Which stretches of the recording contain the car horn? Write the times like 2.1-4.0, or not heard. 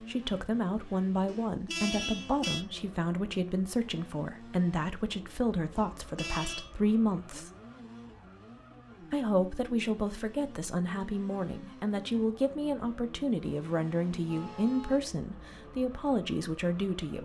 1.2-2.6, 5.8-6.7, 13.4-15.1.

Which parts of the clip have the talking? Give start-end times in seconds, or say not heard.
0.0-7.5, 9.0-17.2.